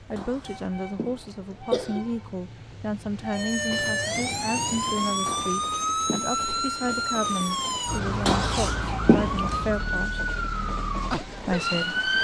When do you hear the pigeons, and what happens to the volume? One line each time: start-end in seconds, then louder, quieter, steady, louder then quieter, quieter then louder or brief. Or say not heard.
not heard.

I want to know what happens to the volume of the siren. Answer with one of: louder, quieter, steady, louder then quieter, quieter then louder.
steady.